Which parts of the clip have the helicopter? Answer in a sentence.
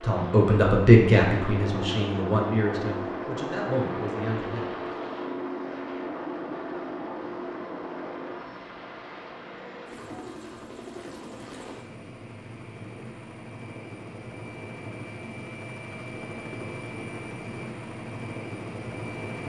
You can hear the helicopter from 0.0 to 19.4 s.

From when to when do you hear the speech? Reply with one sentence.
You can hear the speech from 0.0 to 4.8 s.